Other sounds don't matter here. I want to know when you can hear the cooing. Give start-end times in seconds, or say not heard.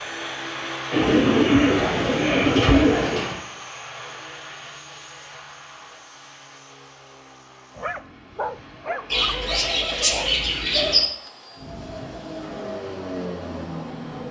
0.9-3.4, 9.1-11.1.